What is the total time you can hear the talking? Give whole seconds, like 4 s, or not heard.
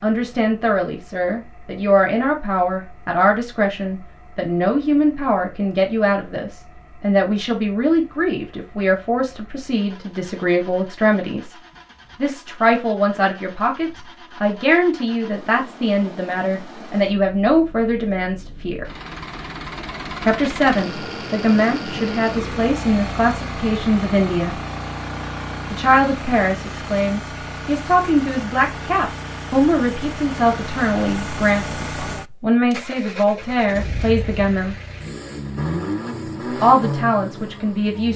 33 s.